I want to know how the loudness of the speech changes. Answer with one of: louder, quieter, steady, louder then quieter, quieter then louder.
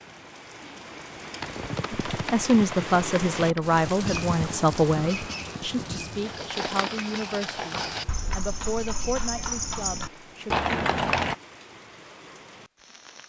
quieter.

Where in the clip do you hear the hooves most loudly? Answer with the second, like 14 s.
11 s.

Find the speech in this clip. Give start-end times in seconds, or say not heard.
2.1-10.6.